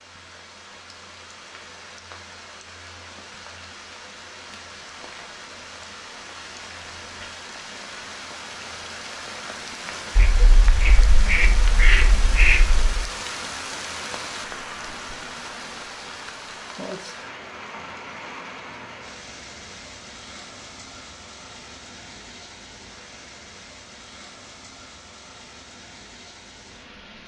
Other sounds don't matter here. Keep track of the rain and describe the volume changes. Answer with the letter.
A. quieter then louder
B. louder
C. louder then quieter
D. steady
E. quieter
C.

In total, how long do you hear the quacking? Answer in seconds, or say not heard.
3 s.